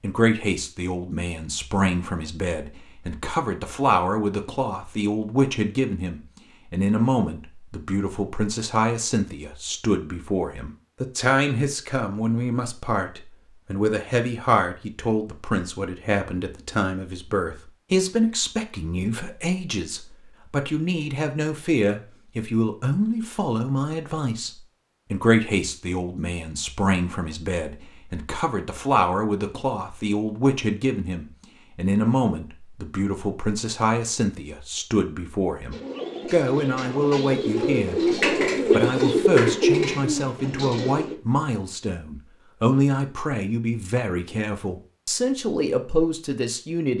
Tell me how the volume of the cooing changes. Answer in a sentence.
The loudness of the cooing goes up, then down.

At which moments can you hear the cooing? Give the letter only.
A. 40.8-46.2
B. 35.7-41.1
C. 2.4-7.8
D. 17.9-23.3
B.